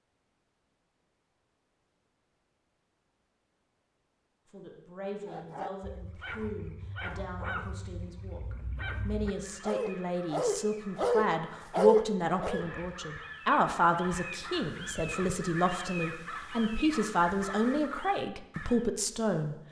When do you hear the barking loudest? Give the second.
12 s.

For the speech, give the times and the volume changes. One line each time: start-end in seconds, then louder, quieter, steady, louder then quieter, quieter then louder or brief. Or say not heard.
4.5-19.6 louder.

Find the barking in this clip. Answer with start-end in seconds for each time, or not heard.
5.2-12.7.